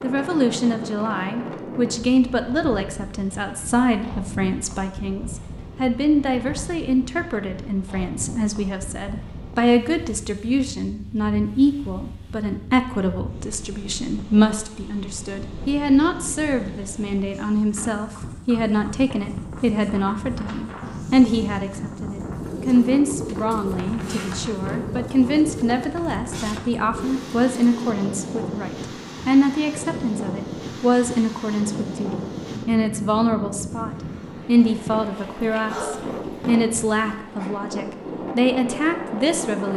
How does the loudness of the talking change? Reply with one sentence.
The loudness of the talking stays about the same.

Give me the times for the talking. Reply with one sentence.
You can hear the talking from 0.0 to 39.7 s.